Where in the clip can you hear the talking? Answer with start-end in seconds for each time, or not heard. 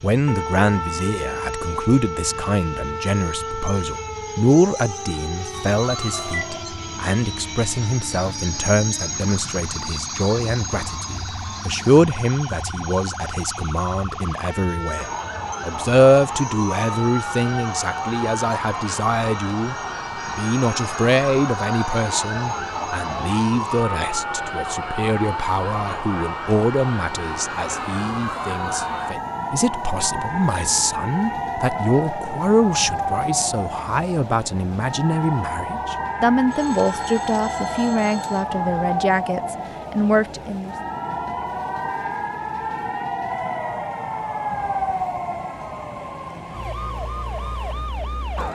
0.0-40.8.